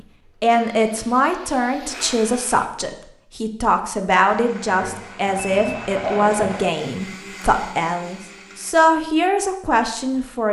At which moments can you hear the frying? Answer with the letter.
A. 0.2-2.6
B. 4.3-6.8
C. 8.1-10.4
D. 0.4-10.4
B.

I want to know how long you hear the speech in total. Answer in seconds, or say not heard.
10 s.